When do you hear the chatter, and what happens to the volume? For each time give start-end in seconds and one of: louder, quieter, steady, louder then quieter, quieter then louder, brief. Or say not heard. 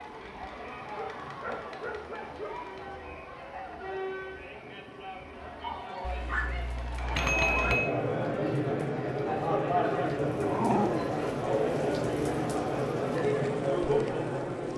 0.0-14.7 louder.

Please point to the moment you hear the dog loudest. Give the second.
11 s.